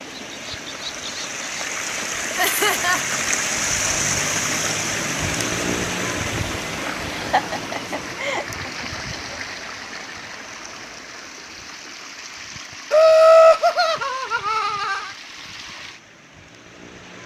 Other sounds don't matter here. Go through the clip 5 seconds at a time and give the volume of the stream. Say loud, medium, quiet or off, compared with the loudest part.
loud, loud, quiet, quiet.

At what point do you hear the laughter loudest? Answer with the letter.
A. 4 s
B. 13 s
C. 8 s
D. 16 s
B.